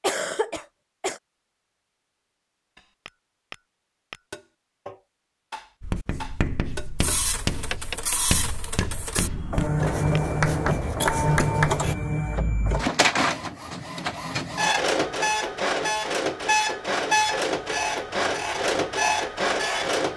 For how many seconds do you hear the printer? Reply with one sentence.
You can hear the printer for 13 seconds altogether.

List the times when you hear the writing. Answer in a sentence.
You can hear the writing from 5.8 to 11.9 s.